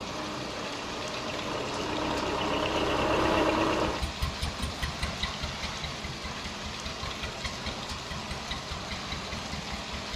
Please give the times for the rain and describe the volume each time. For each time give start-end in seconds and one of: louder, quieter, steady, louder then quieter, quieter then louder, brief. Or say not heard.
0.0-10.1 steady.